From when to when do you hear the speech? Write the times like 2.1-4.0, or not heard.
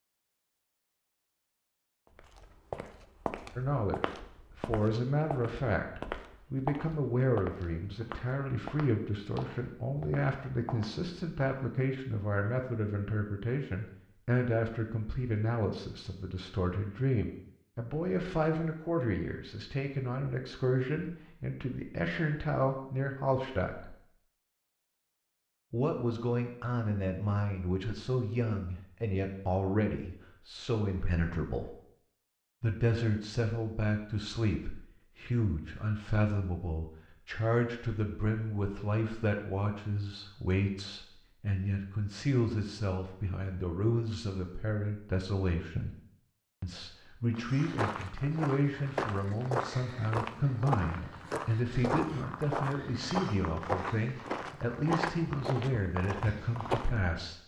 3.5-23.9, 25.7-31.8, 32.6-46.0, 46.6-57.4.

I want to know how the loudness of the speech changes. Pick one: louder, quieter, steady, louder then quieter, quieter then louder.
steady.